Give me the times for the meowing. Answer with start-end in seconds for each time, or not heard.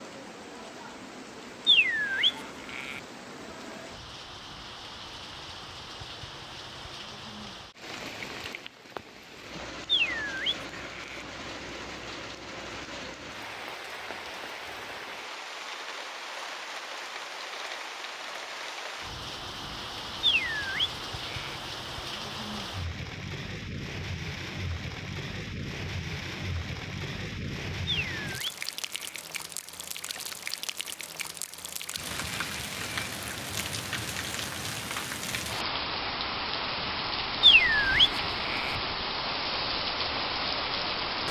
not heard.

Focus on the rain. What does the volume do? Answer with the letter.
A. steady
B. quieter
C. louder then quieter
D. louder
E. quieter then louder
D.